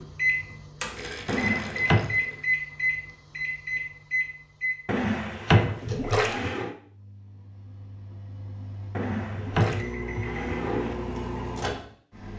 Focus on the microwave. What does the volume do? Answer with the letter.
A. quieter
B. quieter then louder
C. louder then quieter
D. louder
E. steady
B.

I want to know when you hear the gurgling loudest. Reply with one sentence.
The volume of the gurgling peaks at 6 seconds.